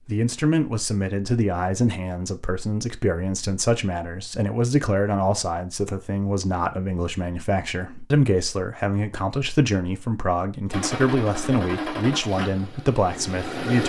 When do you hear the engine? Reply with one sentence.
You can hear the engine from 10.7 to 13.8 s.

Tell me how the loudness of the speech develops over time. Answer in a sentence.
The volume of the speech stays about the same.